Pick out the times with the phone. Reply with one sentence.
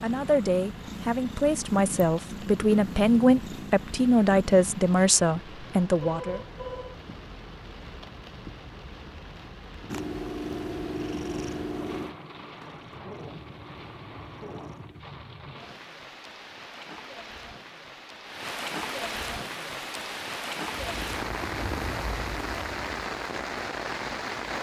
You can hear the phone from 6.0 to 7.0 s.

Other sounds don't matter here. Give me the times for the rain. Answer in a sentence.
The rain can be heard from 0.0 to 24.5 s.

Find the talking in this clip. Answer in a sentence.
The talking can be heard from 0.0 to 6.4 s.